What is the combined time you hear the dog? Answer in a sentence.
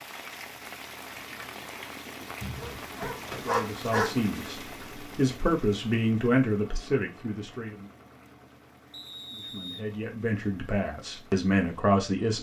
The dog can be heard for 2 seconds in total.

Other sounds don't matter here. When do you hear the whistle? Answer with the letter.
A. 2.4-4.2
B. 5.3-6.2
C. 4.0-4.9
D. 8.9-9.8
D.